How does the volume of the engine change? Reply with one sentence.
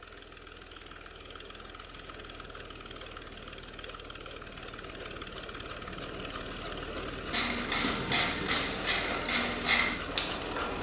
The loudness of the engine goes up.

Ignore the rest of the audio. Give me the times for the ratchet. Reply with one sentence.
The ratchet can be heard from 7.3 to 10.7 s.